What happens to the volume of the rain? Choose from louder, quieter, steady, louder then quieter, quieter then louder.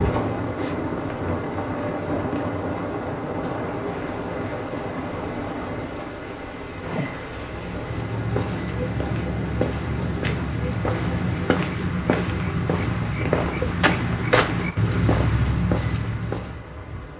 quieter.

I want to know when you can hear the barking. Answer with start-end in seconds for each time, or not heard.
not heard.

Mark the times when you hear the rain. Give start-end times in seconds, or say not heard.
0.0-17.1.